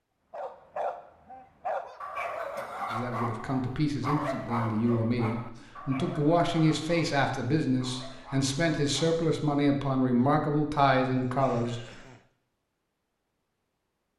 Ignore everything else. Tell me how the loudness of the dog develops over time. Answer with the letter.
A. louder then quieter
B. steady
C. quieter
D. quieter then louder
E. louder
C.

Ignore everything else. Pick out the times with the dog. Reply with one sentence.
The dog can be heard from 0.3 to 9.2 s.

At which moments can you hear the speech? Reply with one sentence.
The speech can be heard from 2.9 to 11.8 s.